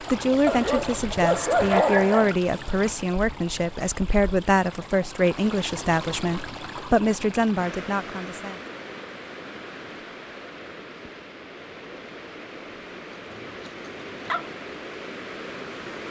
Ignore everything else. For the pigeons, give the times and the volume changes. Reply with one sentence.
The pigeons can't be heard in this clip.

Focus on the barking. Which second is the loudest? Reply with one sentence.
The volume of the barking peaks at 2 seconds.